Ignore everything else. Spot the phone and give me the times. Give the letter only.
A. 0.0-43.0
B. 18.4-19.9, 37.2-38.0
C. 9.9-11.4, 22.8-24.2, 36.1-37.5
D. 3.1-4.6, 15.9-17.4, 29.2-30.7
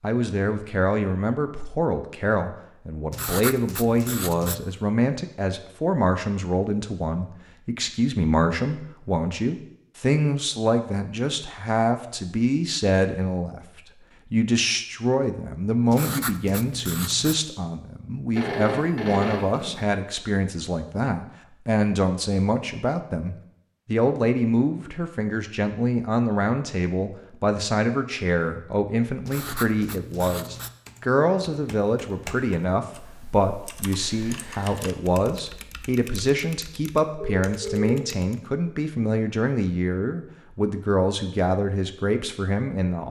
B.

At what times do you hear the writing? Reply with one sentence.
You can hear the writing from 3.1 to 4.6 s, from 15.9 to 17.4 s and from 29.2 to 30.7 s.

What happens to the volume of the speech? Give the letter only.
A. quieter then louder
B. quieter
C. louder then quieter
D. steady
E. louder
D.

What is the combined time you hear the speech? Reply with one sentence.
The speech can be heard for 43 seconds in total.